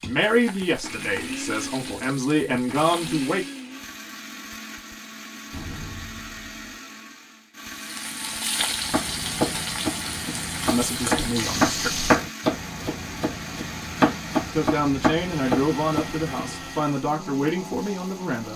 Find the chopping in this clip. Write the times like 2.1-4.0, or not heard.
8.8-16.9.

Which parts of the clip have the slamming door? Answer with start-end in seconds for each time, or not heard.
5.5-6.8.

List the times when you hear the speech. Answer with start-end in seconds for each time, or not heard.
0.0-3.5, 10.7-12.1, 14.5-18.5.